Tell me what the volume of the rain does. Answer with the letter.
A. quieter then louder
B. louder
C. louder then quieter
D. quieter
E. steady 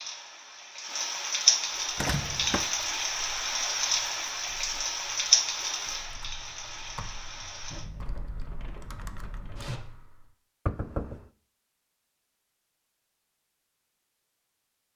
D.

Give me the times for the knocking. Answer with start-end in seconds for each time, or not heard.
1.9-2.7, 10.7-11.2.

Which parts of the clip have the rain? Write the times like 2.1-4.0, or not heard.
0.0-9.8.